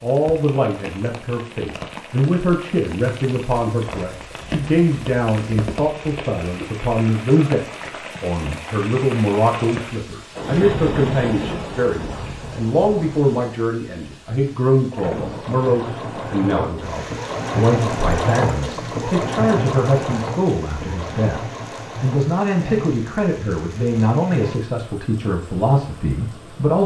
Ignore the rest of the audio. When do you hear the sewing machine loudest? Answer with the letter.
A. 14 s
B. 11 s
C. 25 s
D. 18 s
D.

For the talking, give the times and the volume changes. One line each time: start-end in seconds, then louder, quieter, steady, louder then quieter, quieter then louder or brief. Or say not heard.
0.0-26.8 steady.